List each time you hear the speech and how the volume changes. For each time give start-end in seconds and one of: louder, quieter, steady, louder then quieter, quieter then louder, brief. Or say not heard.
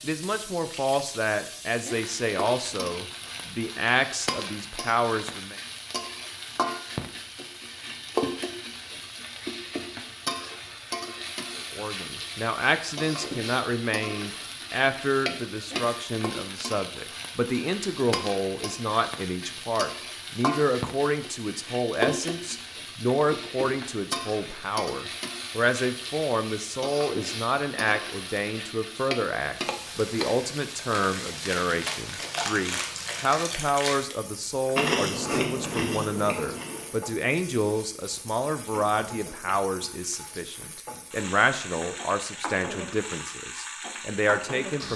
0.0-5.6 steady
11.6-44.9 steady.